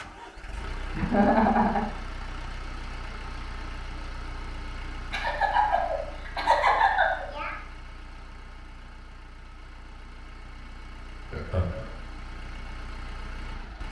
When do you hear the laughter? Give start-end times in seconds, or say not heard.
0.9-1.9, 5.1-7.5, 11.3-11.9.